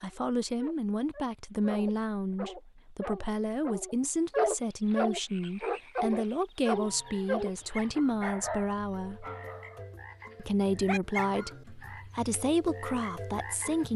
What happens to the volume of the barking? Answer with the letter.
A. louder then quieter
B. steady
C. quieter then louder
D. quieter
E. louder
A.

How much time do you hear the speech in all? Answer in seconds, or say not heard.
13 s.